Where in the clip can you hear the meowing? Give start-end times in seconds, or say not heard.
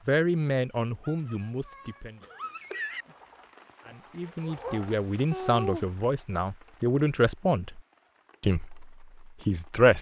1.0-3.0, 5.3-5.9.